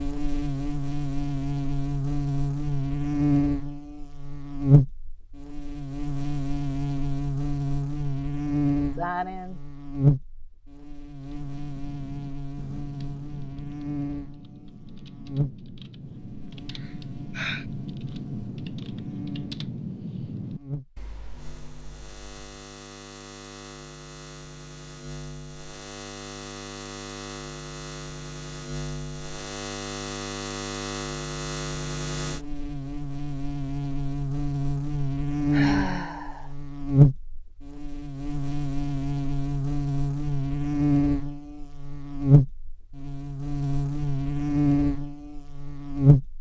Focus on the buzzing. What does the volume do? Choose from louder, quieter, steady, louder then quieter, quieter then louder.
quieter then louder.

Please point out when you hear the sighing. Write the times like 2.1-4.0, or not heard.
8.9-9.6, 16.7-17.6, 35.5-36.5.